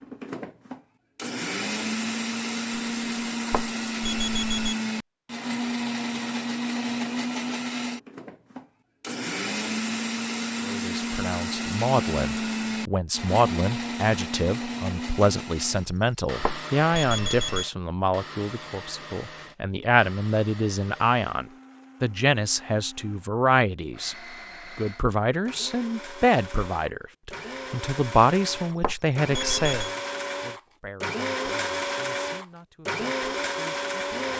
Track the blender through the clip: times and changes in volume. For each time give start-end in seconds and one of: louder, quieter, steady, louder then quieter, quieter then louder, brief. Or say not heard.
0.0-34.3 quieter then louder.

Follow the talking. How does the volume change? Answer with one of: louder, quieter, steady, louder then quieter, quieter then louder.
quieter.